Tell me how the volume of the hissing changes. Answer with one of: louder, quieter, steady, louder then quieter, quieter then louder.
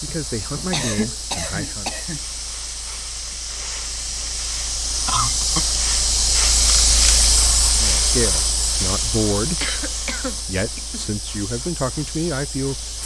louder then quieter.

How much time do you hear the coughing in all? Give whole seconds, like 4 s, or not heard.
4 s.